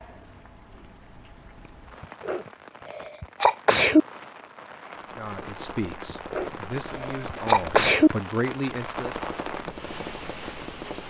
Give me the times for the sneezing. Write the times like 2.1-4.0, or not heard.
2.0-4.0, 6.1-8.1.